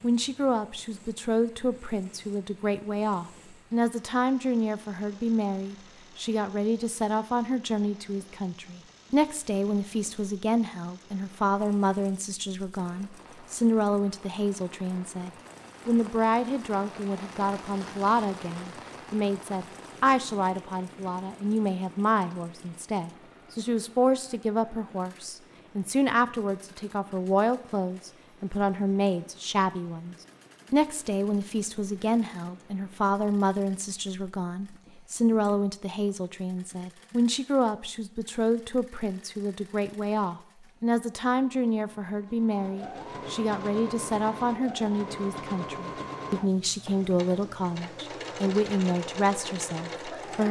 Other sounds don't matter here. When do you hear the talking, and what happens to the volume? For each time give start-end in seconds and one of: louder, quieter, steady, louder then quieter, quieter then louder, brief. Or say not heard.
0.0-50.4 steady.